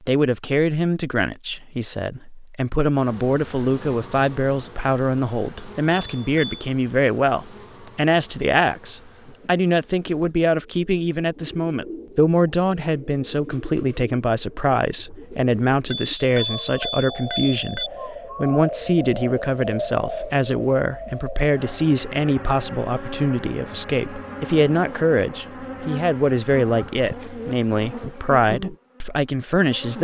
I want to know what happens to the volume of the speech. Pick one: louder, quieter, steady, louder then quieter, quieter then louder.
steady.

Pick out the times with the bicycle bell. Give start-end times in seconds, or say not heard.
5.9-6.6, 15.9-17.9.